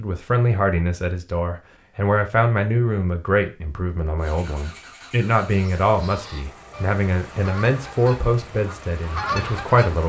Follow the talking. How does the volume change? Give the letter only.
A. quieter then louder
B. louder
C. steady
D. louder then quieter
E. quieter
C.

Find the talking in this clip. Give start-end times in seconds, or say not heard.
0.0-10.0.